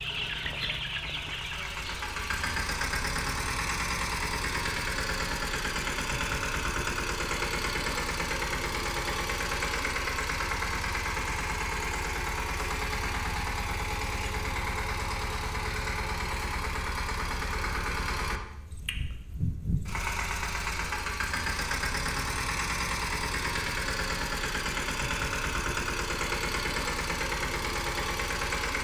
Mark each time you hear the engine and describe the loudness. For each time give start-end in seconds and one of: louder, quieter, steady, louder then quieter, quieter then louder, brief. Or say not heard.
0.0-28.7 steady.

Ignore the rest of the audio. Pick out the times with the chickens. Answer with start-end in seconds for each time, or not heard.
0.0-2.5.